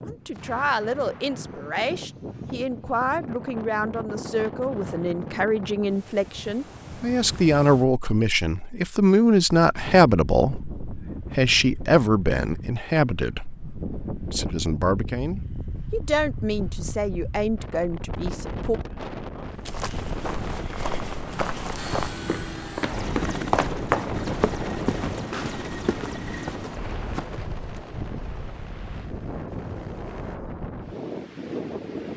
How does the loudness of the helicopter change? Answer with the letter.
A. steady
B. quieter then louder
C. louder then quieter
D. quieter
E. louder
D.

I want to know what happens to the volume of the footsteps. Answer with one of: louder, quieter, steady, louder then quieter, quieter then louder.
louder then quieter.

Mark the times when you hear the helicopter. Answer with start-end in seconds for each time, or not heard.
21.8-30.4.